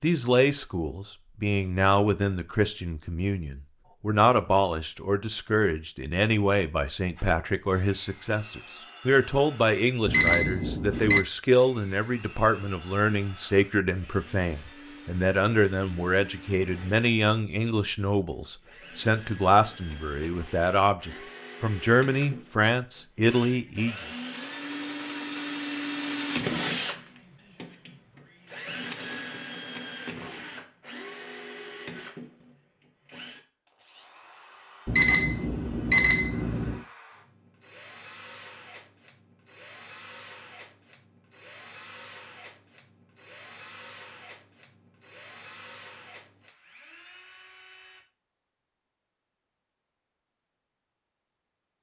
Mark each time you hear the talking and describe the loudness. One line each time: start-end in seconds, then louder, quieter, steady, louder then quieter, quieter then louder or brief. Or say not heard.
0.0-23.9 steady.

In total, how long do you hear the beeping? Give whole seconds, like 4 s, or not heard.
3 s.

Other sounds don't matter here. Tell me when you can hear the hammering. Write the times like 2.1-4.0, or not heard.
not heard.